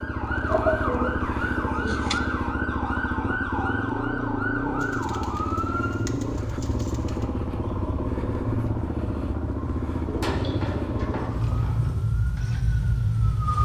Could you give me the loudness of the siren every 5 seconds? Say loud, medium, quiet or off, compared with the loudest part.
loud, medium, loud.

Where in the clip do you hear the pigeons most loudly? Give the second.
1 s.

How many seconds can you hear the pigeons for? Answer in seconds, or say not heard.
6 s.